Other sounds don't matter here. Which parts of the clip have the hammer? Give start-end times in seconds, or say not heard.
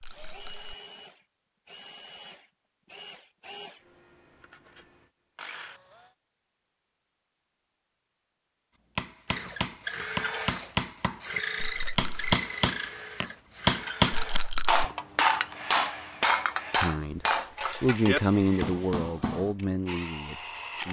8.9-19.6.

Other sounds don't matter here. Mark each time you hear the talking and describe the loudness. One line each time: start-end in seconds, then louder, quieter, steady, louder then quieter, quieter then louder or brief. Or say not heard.
16.8-20.8 louder then quieter.